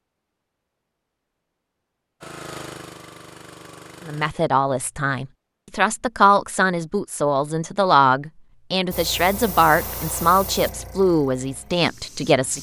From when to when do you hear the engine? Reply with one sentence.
The engine can be heard from 2.2 to 4.3 s.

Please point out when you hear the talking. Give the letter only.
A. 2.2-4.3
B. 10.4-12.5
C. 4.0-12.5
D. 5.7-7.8
C.